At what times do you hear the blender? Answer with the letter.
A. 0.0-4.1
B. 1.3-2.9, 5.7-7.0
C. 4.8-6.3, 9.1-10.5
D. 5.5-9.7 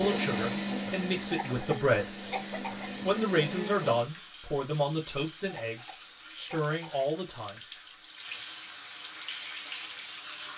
A.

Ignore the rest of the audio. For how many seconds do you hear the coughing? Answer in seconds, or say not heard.
3 s.